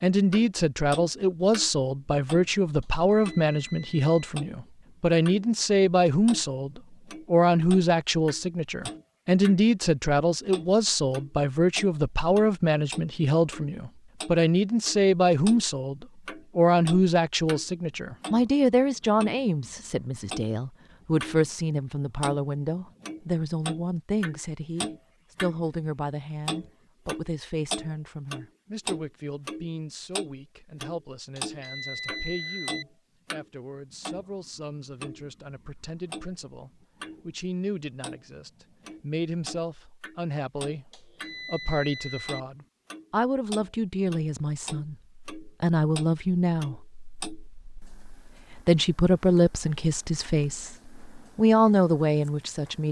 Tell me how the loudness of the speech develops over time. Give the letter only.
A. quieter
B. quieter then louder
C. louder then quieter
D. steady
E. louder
B.